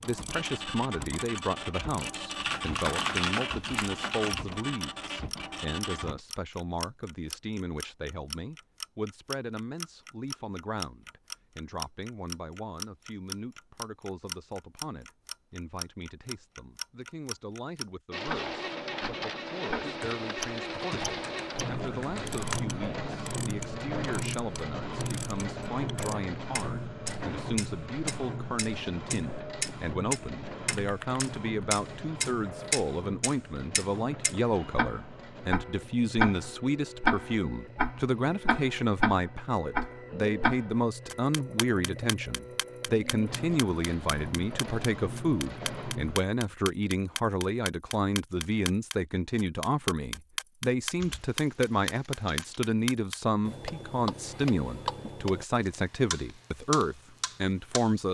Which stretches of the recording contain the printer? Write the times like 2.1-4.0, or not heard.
0.0-6.2, 18.1-46.2.